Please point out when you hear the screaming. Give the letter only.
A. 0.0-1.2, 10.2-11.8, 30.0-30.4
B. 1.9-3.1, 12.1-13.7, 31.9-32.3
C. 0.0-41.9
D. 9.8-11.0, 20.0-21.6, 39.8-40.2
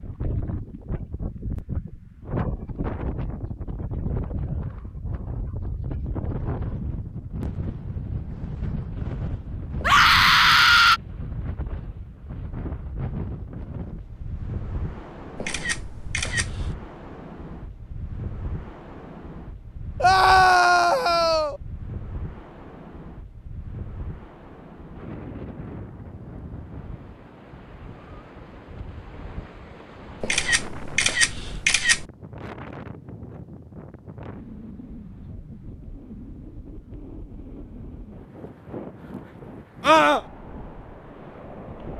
D.